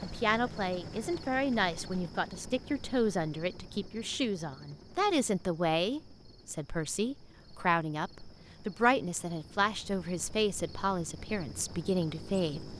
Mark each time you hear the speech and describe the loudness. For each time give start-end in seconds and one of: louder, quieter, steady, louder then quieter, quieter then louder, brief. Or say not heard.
0.0-12.7 steady.